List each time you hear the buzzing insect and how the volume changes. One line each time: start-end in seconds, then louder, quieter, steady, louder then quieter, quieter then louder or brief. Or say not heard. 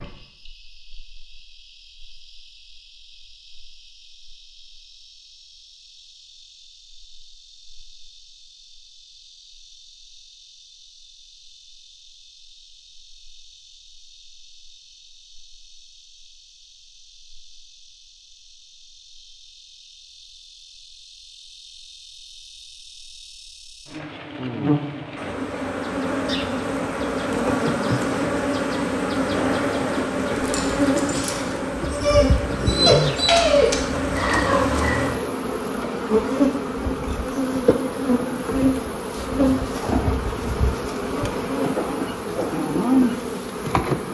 0.0-44.0 louder.